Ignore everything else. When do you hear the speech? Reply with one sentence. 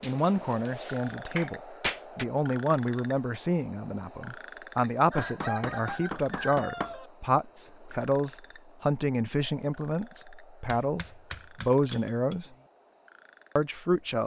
The speech can be heard from 0.0 to 12.4 s and from 13.6 to 14.2 s.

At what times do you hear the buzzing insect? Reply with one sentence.
You can't hear the buzzing insect here.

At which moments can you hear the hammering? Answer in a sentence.
You can hear the hammering from 0.0 to 2.2 s, from 5.2 to 7.0 s and from 10.7 to 12.7 s.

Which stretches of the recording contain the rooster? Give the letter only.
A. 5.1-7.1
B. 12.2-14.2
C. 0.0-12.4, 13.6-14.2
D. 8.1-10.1
A.